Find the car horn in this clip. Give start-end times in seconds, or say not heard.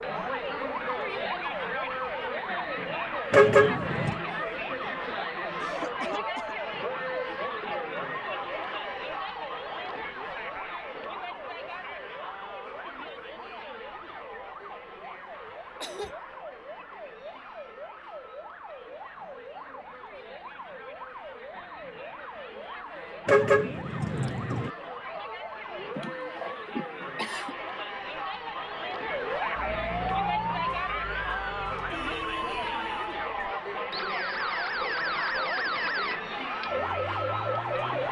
3.3-4.2, 23.2-24.7.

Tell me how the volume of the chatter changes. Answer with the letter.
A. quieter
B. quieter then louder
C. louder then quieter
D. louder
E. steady
B.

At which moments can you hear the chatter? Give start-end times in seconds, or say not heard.
0.0-38.0.